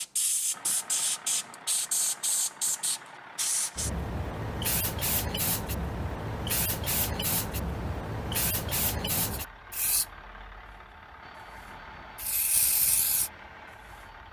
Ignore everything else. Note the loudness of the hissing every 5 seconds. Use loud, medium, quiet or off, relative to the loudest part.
loud, loud, medium.